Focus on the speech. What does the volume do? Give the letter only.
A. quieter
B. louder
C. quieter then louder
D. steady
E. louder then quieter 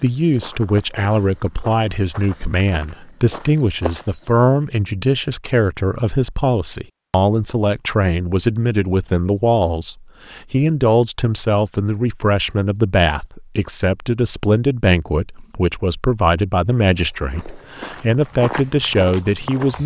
D.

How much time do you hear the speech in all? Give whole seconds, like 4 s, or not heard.
20 s.